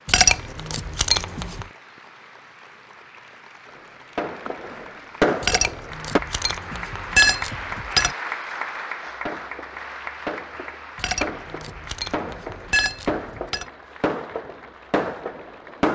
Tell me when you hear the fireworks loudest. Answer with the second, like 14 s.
5 s.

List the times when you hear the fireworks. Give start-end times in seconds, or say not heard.
3.6-6.2, 9.2-15.8.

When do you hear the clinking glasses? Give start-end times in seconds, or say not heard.
0.1-1.6, 5.4-8.2, 10.9-13.7.